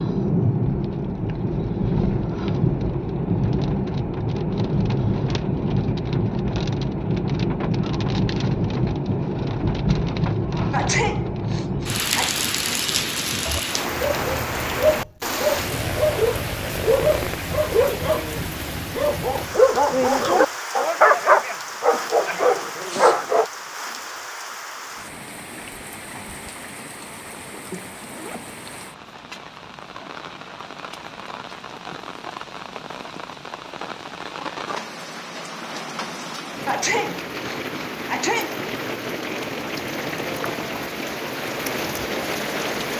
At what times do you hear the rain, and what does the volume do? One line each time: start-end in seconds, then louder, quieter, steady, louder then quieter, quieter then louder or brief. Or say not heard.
0.0-42.9 quieter then louder.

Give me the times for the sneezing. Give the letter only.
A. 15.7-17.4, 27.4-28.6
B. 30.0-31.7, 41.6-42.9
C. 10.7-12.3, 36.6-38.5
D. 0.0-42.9
C.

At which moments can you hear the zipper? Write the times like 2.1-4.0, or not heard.
15.7-17.4, 27.4-28.6.